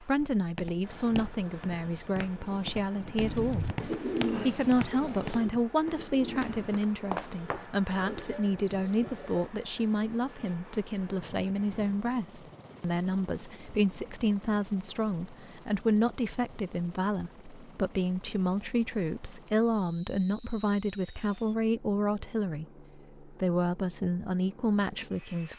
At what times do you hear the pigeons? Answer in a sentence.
The pigeons can be heard from 3.2 to 9.4 s.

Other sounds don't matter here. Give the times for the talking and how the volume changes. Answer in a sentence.
You can hear the talking from 0.0 to 25.5 s, at a steady volume.